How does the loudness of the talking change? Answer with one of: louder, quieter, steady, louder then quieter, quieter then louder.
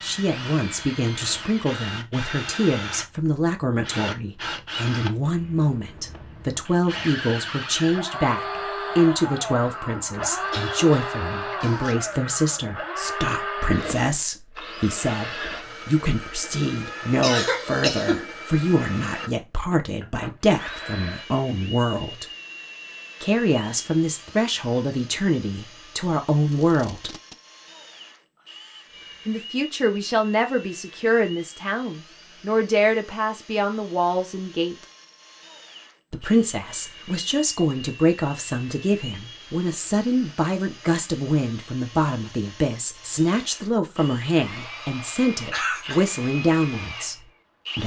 steady.